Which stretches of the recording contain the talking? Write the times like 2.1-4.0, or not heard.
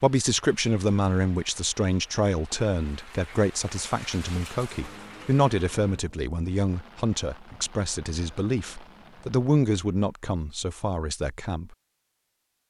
0.0-11.8.